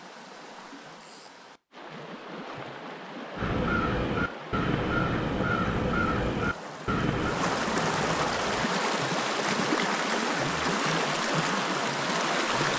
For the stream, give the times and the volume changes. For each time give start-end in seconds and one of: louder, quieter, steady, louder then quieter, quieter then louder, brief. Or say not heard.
0.0-12.7 louder.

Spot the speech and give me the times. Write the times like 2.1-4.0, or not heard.
not heard.